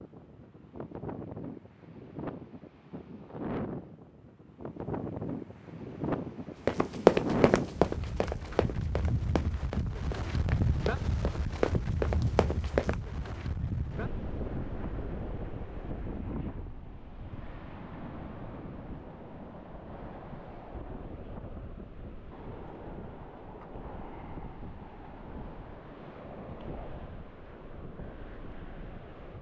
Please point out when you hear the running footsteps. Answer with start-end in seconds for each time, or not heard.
6.7-12.9.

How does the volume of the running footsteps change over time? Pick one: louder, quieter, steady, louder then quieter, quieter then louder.
quieter then louder.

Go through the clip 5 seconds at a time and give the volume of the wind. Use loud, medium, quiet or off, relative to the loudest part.
medium, loud, loud, medium, medium, medium.